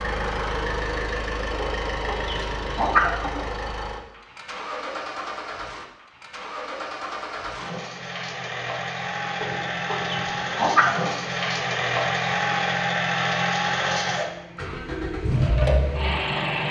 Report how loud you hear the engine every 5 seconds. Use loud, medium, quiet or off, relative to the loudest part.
medium, medium, loud, loud.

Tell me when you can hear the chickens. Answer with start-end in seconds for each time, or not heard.
1.6-3.5, 9.4-11.1.